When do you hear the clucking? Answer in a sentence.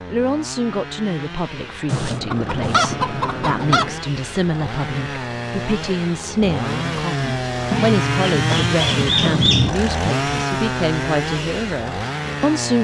The clucking can be heard from 1.9 to 4.0 s and from 7.7 to 9.8 s.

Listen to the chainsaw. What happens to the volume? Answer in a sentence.
The loudness of the chainsaw goes up.